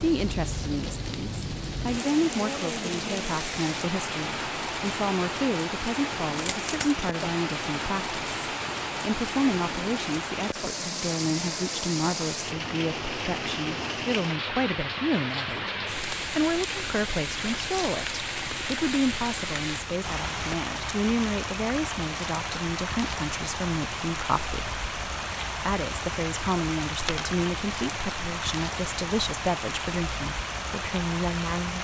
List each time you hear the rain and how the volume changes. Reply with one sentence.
You can hear the rain from 0.0 to 31.8 s, at a steady volume.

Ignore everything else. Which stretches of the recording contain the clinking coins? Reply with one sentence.
The clinking coins can be heard from 6.3 to 7.0 s and from 26.9 to 27.4 s.